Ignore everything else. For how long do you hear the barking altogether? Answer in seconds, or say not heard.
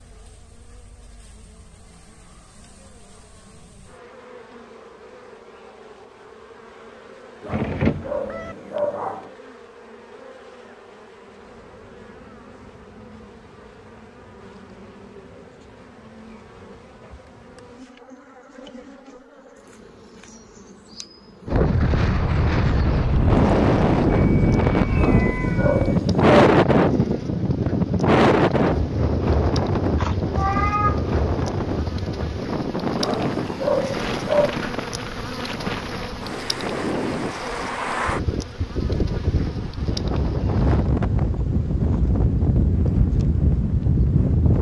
5 s.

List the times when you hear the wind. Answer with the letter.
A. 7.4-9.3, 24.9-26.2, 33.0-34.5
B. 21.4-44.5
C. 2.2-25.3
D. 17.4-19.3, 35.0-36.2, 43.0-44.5
B.